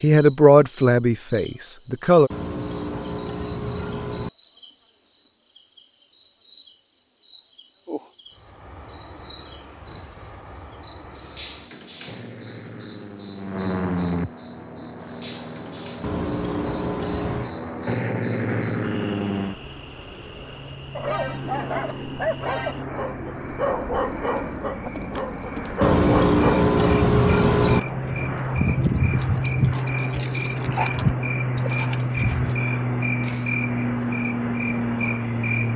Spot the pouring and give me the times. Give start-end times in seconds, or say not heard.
2.3-4.3, 16.0-17.5, 25.8-27.8.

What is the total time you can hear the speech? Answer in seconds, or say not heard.
2 s.